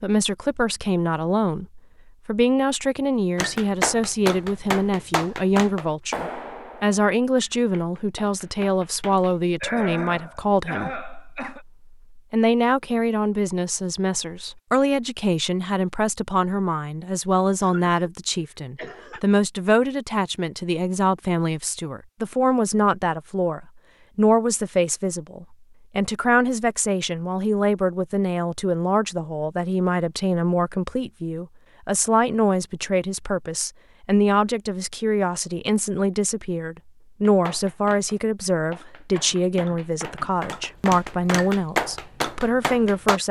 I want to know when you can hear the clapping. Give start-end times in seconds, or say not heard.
3.4-9.3, 37.2-43.2.